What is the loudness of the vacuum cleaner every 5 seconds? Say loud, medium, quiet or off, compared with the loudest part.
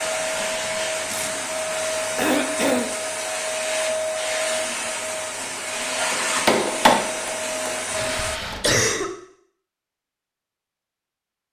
loud, loud, off.